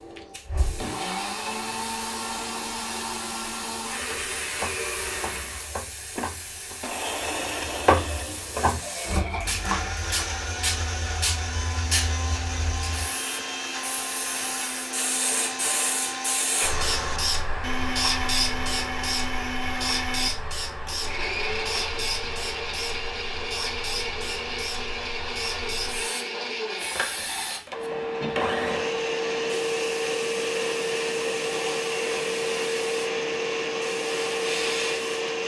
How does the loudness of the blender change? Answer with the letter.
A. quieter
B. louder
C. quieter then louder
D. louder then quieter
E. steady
E.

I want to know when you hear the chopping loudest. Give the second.
8 s.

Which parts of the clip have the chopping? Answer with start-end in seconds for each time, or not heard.
4.0-10.2.